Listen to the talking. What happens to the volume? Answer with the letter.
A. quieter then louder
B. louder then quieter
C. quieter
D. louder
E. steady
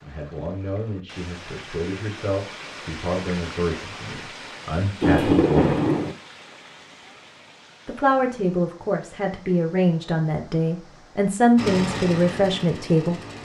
D.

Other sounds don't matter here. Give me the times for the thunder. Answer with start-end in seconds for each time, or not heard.
5.0-6.2.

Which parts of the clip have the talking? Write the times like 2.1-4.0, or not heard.
0.0-5.8, 7.8-13.2.